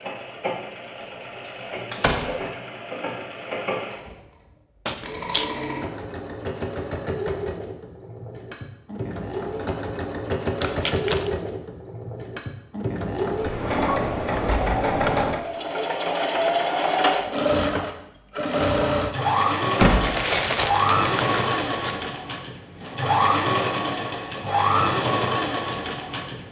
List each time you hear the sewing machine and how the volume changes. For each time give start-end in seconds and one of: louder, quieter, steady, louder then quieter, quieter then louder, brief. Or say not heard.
0.0-26.4 louder.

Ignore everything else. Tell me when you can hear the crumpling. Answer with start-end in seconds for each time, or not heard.
4.8-5.5, 10.6-11.3, 20.0-22.0.